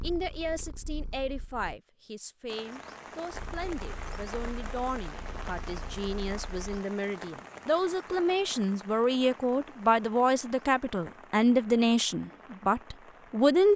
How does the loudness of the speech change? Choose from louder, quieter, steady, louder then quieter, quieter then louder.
louder.